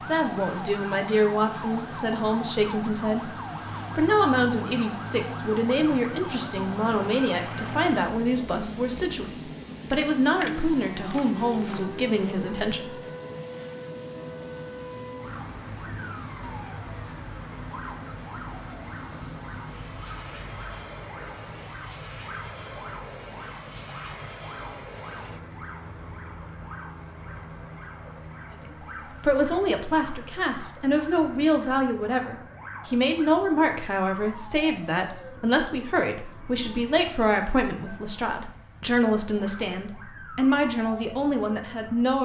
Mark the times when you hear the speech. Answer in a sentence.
The speech can be heard from 0.0 to 3.3 s, from 3.9 to 12.9 s and from 29.2 to 42.2 s.